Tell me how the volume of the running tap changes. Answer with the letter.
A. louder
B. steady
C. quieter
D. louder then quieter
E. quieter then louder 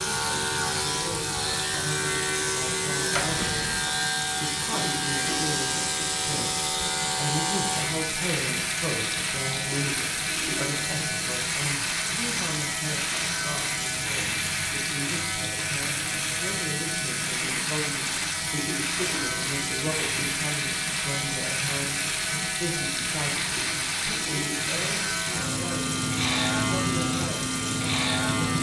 B.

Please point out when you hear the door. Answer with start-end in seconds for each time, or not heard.
3.1-3.9.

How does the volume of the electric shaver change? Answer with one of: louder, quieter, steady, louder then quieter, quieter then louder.
steady.